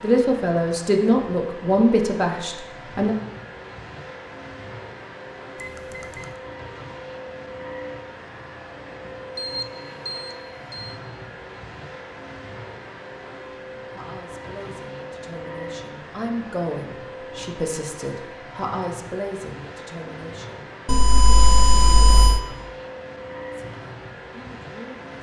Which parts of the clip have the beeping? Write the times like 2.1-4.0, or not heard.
5.5-6.3, 9.3-10.9, 20.9-22.4.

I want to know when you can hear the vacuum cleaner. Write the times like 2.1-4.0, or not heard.
0.0-25.1.